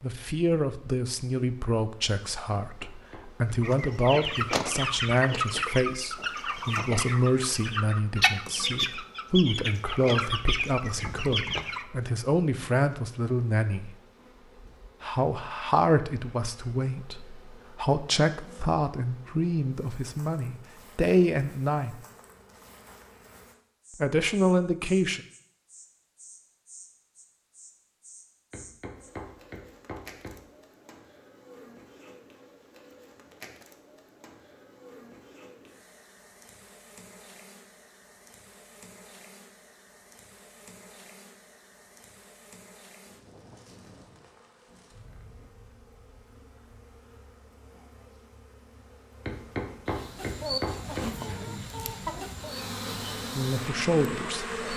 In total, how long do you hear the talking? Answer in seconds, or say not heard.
24 s.